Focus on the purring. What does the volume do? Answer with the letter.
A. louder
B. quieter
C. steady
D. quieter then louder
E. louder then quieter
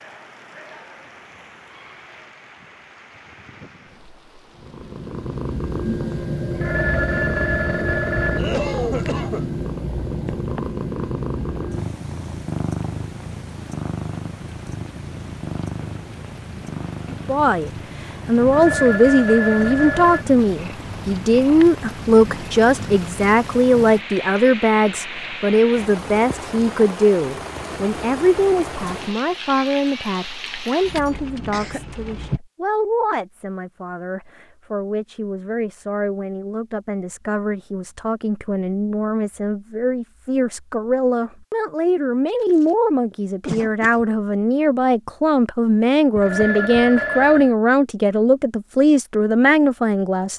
B.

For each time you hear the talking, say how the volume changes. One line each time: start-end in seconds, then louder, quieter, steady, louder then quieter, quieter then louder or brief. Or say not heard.
17.1-50.3 quieter then louder.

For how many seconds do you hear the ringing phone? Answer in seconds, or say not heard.
5 s.